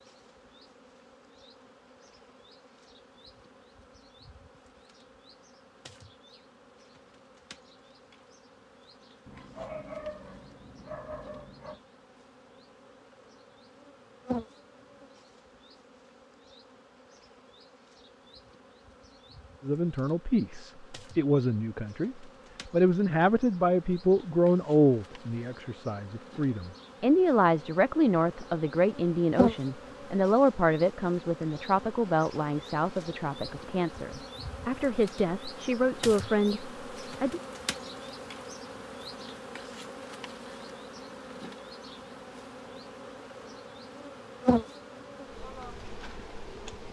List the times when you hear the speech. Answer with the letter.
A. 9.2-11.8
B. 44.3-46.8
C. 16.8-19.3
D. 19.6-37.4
D.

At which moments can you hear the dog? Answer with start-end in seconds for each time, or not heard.
9.2-11.8.